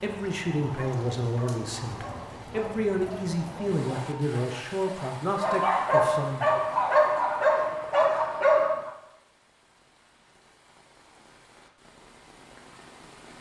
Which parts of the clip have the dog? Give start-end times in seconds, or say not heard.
0.6-8.9.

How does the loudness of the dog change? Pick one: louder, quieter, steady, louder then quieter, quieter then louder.
louder.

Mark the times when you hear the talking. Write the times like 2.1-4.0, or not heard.
0.0-6.5.